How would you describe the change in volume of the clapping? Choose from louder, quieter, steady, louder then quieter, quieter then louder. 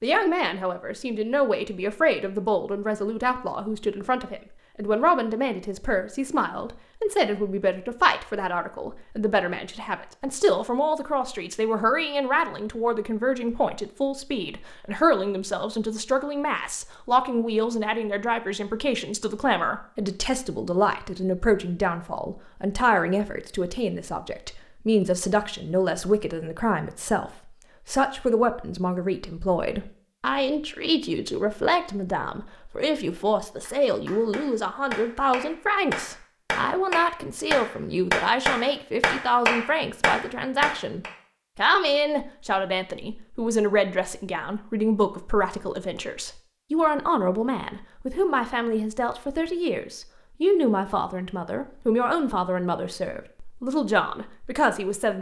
louder.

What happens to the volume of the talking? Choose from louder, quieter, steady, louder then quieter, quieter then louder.
steady.